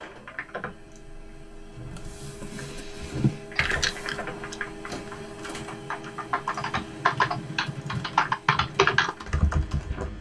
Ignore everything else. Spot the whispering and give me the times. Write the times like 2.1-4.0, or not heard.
not heard.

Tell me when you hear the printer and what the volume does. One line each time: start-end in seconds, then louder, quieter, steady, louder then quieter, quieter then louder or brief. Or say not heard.
0.0-10.1 louder then quieter.